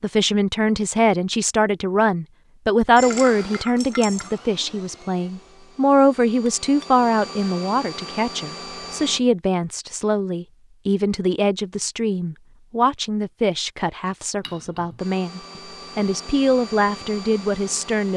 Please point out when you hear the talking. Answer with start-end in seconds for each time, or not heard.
0.0-18.1.